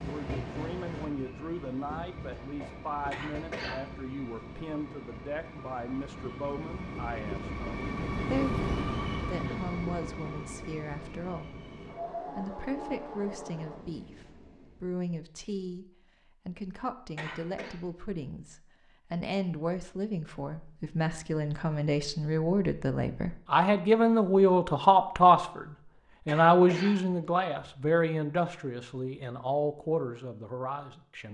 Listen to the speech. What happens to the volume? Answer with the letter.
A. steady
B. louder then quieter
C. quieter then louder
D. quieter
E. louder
E.